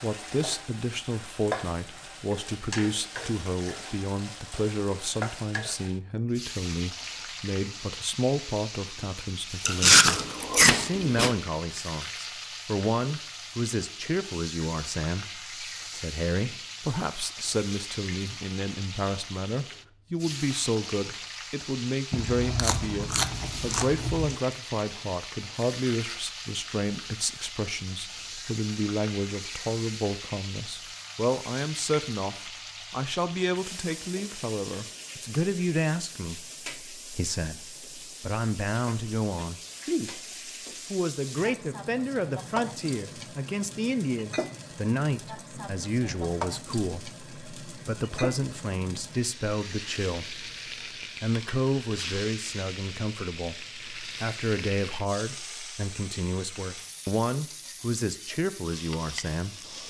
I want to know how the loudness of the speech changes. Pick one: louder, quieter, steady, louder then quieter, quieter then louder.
steady.